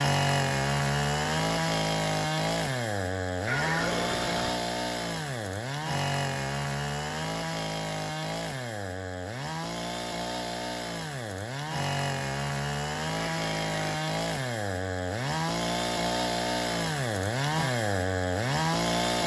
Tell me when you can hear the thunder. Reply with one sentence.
The thunder can't be heard in this clip.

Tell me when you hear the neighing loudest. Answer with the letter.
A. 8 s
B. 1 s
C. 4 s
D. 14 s
C.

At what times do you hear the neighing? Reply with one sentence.
You can hear the neighing from 3.5 to 4.6 s and from 13.2 to 13.9 s.